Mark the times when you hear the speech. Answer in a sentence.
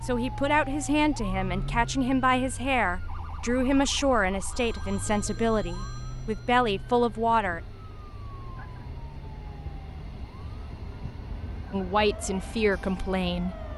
The speech can be heard from 0.0 to 7.6 s and from 11.7 to 13.7 s.